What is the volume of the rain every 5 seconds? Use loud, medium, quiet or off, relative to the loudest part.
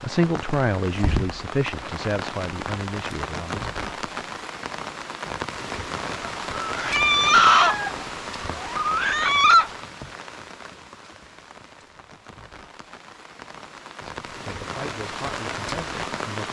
loud, loud, medium, loud.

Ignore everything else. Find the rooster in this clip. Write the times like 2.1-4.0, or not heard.
6.2-9.7.